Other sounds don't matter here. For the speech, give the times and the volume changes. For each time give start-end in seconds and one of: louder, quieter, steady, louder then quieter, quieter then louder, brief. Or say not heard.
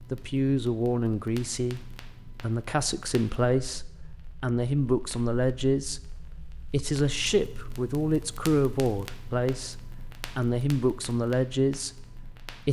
0.1-12.6 steady.